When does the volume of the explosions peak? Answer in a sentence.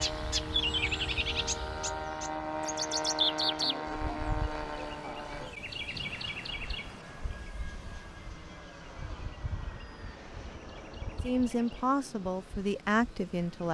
The loudest moment of the explosions is at 6 seconds.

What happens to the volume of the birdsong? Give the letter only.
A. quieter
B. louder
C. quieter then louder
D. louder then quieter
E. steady
A.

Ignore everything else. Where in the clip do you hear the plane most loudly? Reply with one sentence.
The loudest moment of the plane is at 3 seconds.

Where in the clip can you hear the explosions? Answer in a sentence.
You can hear the explosions from 5.9 to 7.5 s.